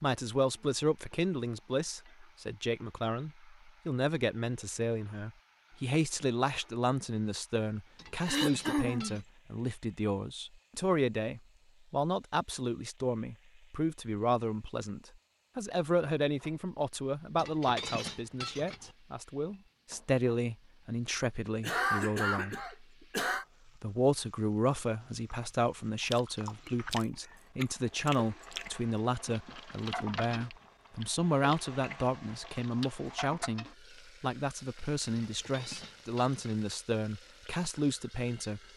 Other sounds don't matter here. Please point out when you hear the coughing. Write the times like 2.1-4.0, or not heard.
8.2-9.2, 21.6-23.4.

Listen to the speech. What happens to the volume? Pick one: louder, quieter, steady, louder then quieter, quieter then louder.
steady.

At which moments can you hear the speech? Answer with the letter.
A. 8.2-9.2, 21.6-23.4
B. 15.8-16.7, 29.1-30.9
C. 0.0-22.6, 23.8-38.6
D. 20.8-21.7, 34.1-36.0
C.